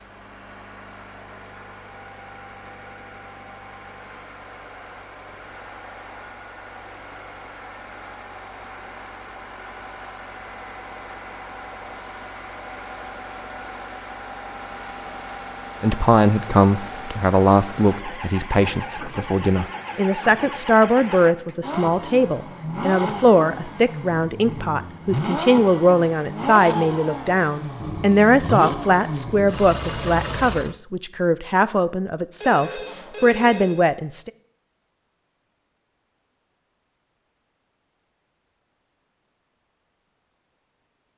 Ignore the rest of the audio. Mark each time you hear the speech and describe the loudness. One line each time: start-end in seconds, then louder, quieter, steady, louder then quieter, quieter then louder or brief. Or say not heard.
15.8-34.3 steady.